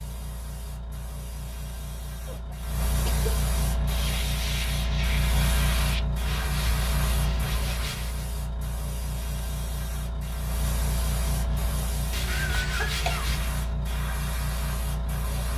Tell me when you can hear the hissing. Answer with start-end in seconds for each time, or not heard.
0.0-15.5.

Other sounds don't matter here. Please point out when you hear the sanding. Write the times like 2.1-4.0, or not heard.
3.7-8.3, 11.3-13.8.